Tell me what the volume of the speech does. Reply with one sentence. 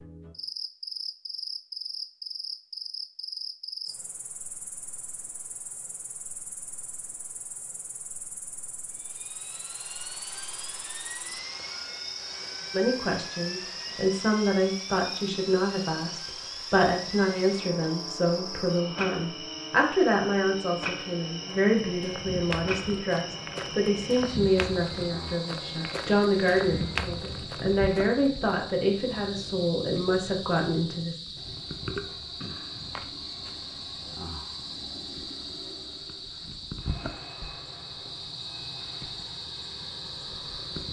The loudness of the speech stays about the same.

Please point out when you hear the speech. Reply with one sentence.
The speech can be heard from 12.7 to 31.1 s.